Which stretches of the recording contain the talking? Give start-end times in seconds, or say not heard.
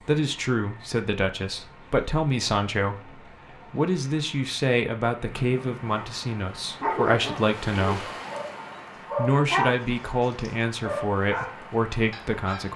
0.1-8.1, 9.2-12.7.